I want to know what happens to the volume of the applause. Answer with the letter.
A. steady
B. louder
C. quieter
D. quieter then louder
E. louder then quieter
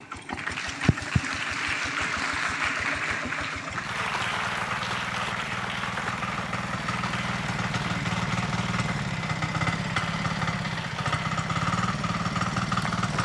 C.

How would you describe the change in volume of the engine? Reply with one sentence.
The loudness of the engine goes up.